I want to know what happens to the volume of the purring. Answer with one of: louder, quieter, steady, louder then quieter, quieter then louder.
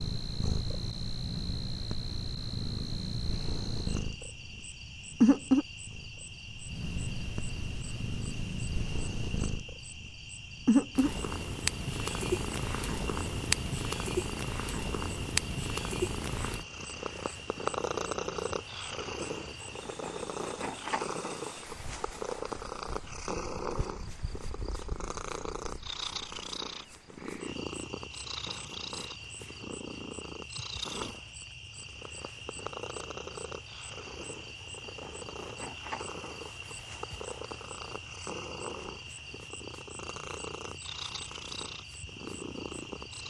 quieter.